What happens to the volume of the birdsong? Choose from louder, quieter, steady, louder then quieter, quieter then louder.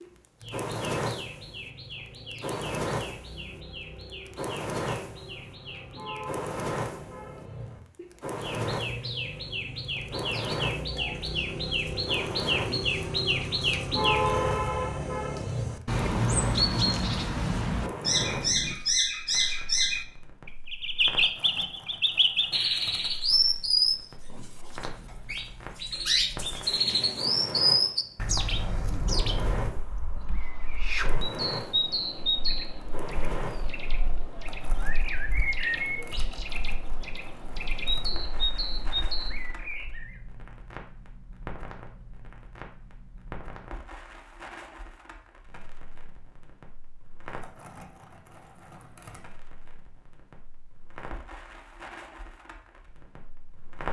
louder then quieter.